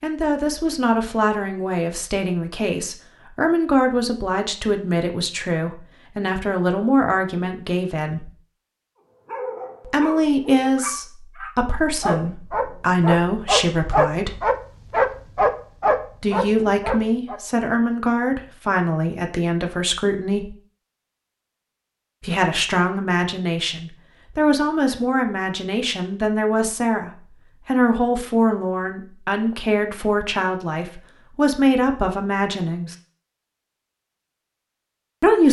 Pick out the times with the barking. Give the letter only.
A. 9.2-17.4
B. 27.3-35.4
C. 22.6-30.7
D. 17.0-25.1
A.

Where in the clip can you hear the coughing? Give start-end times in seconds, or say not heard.
not heard.